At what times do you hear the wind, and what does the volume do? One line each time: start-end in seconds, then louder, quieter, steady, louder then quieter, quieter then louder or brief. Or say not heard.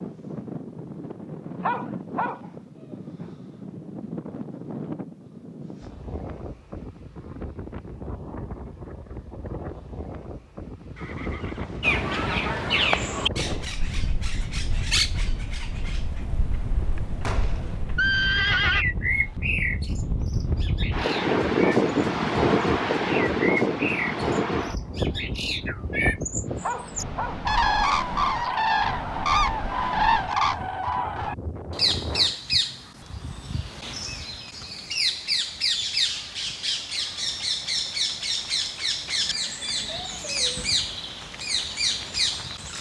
0.0-32.4 louder then quieter.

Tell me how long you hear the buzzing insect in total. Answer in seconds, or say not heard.
not heard.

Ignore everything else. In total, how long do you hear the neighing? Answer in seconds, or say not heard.
4 s.